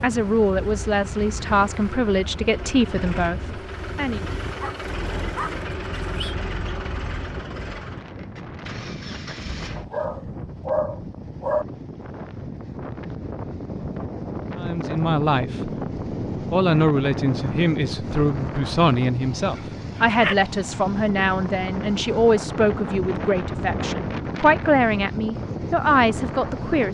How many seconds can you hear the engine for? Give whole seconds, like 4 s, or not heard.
10 s.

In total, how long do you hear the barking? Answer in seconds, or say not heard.
5 s.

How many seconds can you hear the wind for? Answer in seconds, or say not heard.
27 s.